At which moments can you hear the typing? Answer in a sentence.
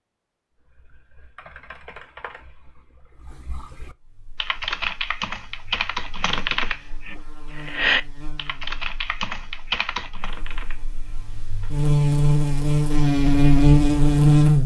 The typing can be heard from 0.6 to 11.2 s.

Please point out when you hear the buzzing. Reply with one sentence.
You can hear the buzzing from 4.0 to 14.6 s.